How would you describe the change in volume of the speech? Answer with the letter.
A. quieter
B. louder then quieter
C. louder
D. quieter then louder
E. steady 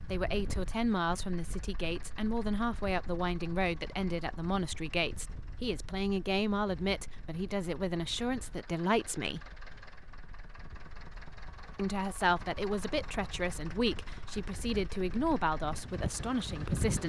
E.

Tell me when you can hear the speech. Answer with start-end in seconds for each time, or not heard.
0.1-9.6, 11.8-17.0.